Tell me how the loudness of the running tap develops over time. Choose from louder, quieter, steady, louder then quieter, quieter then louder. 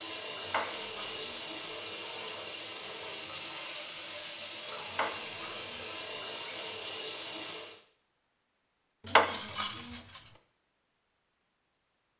steady.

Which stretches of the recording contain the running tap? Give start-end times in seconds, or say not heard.
0.0-7.8.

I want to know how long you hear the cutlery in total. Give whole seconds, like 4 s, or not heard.
3 s.